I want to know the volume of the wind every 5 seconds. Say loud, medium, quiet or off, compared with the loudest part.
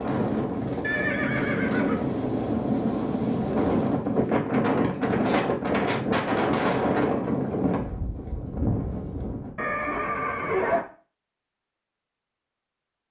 loud, loud, off.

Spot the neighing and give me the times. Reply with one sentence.
The neighing can be heard from 0.8 to 2.0 s and from 9.6 to 10.8 s.